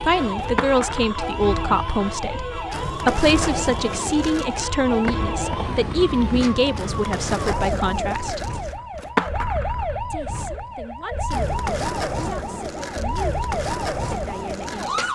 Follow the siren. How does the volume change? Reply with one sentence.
The loudness of the siren stays about the same.